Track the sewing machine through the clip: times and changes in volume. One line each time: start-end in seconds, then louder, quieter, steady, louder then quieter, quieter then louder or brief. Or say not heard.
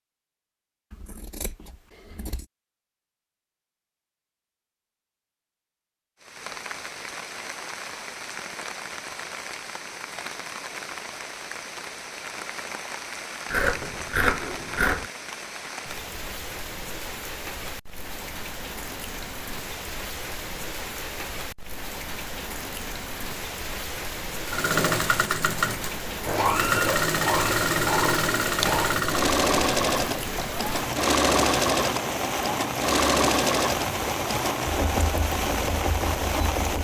24.4-36.7 quieter.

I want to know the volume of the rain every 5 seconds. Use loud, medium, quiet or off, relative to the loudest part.
off, medium, medium, medium, medium, medium, loud, loud.